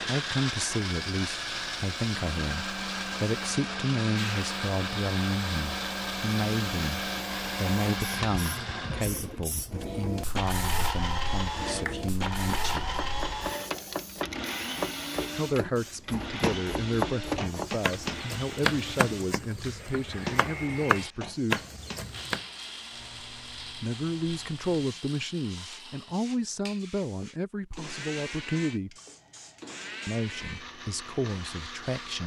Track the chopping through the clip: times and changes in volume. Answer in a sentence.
You can hear the chopping from 11.8 to 22.4 s, getting louder.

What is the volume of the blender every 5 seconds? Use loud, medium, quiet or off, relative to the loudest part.
loud, loud, loud, medium, medium, medium, medium.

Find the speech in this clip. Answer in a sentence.
You can hear the speech from 0.1 to 12.9 s, from 15.3 to 21.6 s, from 23.8 to 28.9 s and from 30.1 to 32.2 s.